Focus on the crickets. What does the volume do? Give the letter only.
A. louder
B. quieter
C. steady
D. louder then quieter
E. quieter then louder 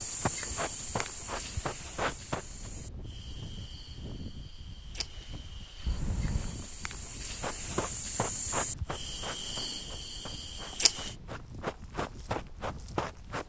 E.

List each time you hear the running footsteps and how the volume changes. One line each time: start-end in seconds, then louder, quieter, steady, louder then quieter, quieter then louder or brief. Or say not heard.
0.0-2.5 brief
7.4-13.4 quieter then louder.